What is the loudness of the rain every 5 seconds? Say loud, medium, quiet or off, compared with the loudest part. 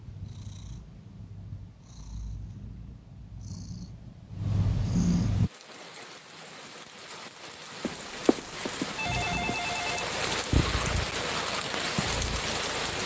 off, medium, loud.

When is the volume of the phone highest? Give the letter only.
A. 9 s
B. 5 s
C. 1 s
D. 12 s
A.